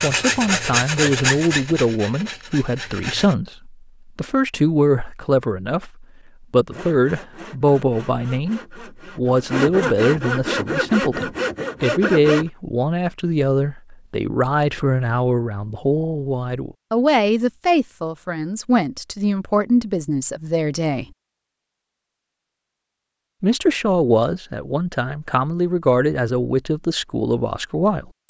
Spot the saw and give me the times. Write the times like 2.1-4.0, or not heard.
0.0-3.4, 6.6-12.5.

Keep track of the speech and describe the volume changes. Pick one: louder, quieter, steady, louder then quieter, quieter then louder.
steady.